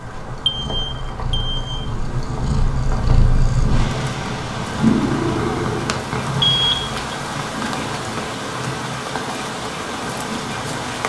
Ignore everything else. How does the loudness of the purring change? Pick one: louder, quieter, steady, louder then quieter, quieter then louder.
louder then quieter.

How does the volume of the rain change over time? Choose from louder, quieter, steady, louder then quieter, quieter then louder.
louder.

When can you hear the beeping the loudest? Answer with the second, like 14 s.
7 s.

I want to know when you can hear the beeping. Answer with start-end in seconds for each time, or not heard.
0.5-1.8, 6.4-7.2.